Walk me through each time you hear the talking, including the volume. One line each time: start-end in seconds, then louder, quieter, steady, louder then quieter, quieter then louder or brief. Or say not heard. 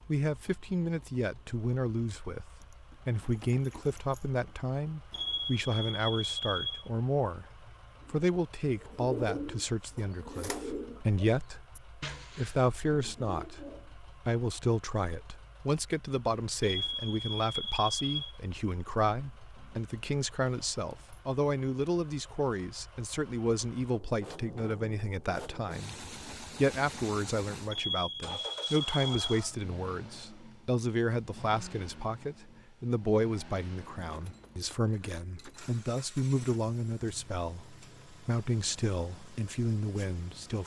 0.1-40.6 steady.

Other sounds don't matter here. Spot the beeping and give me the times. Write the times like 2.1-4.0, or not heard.
5.1-6.9, 16.6-18.4, 27.7-29.2.